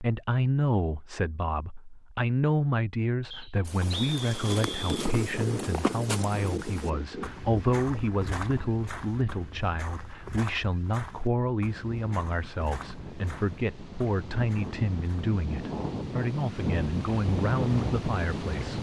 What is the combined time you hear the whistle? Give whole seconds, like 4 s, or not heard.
2 s.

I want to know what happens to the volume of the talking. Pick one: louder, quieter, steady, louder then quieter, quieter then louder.
steady.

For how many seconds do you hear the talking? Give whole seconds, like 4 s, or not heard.
19 s.